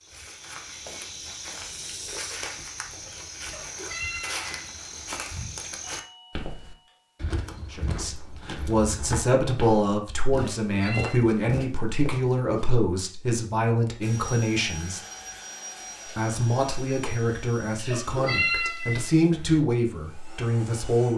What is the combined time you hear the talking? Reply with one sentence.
The talking can be heard for 12 seconds in total.